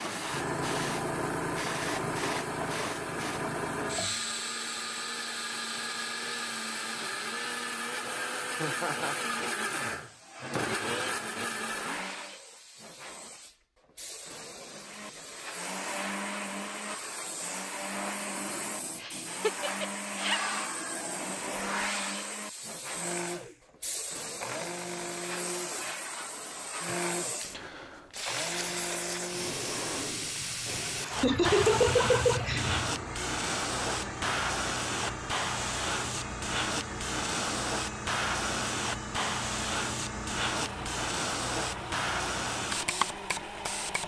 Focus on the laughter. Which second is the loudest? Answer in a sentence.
The volume of the laughter peaks at 32 seconds.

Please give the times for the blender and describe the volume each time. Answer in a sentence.
The blender can be heard from 0.0 to 12.3 s, getting louder; and from 14.8 to 44.0 s, at a steady volume.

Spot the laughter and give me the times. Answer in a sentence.
The laughter can be heard from 8.6 to 9.2 s, from 19.0 to 20.4 s and from 31.2 to 32.9 s.